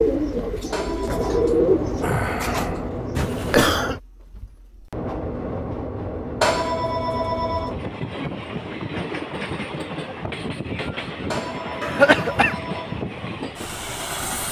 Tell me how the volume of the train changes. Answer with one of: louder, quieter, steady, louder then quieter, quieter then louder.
steady.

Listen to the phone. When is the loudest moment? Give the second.
7 s.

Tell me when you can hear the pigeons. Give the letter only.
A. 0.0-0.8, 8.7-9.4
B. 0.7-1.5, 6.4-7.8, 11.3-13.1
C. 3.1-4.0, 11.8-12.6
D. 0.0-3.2
D.